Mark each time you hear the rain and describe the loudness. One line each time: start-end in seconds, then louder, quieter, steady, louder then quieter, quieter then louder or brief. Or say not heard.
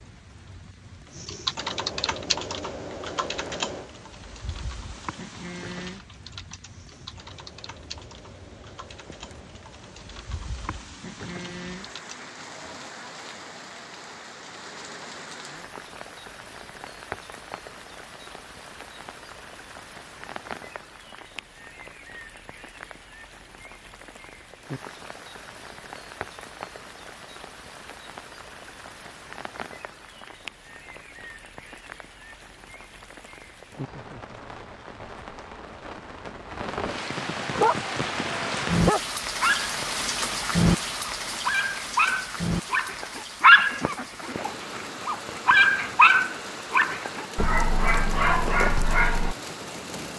0.0-50.1 louder.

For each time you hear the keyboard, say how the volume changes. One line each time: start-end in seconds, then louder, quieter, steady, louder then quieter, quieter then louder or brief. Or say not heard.
1.1-12.2 quieter.